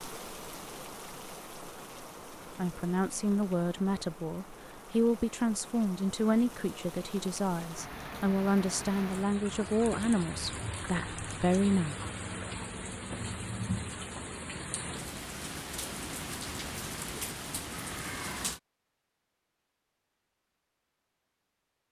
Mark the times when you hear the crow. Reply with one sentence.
The crow can't be heard in this clip.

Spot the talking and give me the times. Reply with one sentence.
The talking can be heard from 2.5 to 11.9 s.